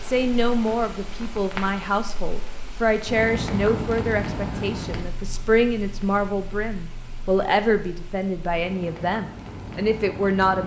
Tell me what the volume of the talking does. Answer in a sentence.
The loudness of the talking stays about the same.